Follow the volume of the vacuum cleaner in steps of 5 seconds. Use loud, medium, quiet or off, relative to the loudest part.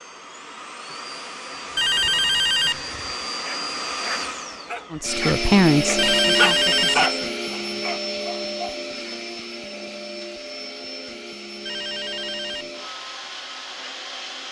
medium, loud, medium.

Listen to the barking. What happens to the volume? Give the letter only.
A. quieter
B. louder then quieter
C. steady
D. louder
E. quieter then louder
B.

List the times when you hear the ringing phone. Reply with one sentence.
You can hear the ringing phone from 1.8 to 2.9 s, from 6.0 to 7.0 s and from 11.7 to 12.7 s.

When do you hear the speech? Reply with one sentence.
The speech can be heard from 4.9 to 7.3 s.